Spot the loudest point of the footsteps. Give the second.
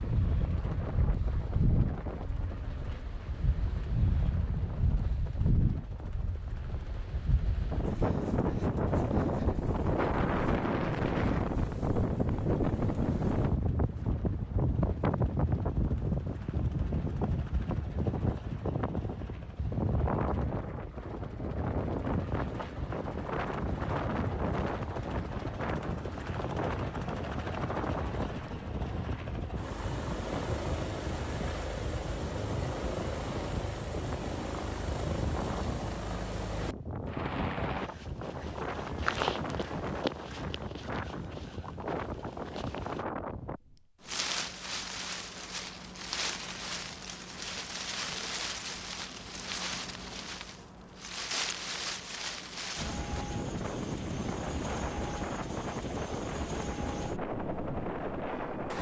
39 s.